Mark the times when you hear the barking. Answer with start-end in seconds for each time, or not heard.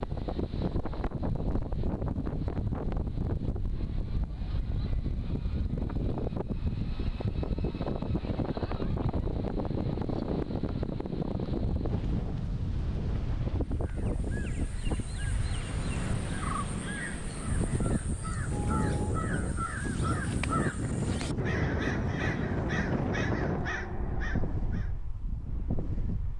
not heard.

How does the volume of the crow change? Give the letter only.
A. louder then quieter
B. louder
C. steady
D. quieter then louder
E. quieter
B.